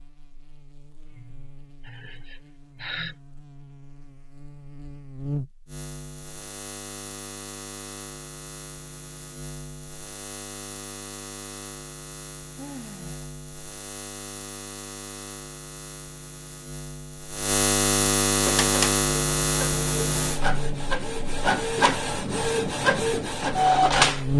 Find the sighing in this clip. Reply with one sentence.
You can hear the sighing from 1.1 to 3.1 s and from 12.6 to 13.2 s.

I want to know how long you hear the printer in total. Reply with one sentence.
The printer can be heard for 6 seconds in total.